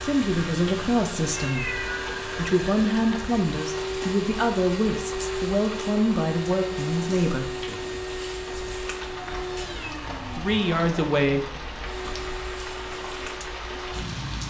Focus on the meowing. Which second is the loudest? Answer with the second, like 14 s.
2 s.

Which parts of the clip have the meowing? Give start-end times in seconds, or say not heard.
1.3-2.4, 9.1-10.6.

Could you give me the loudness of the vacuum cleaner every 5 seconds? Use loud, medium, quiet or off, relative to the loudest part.
loud, loud, medium.